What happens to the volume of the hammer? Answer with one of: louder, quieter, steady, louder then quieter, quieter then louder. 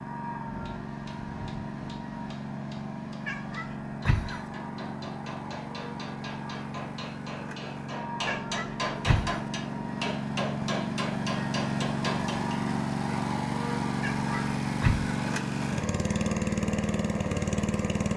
louder.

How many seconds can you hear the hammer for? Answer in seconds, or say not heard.
12 s.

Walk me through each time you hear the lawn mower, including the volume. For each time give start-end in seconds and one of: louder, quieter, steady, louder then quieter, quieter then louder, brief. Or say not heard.
0.0-18.1 louder.